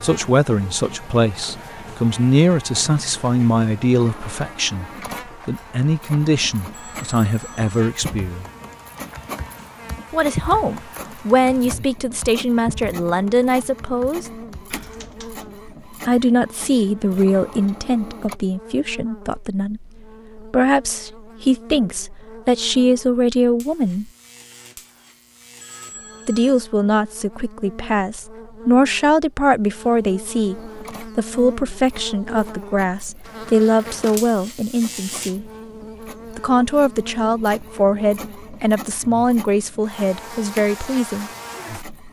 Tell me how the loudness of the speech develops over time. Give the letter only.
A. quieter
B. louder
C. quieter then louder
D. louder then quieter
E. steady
E.